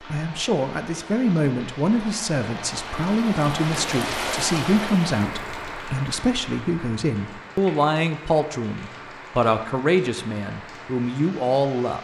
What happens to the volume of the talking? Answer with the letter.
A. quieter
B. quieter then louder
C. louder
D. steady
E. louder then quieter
D.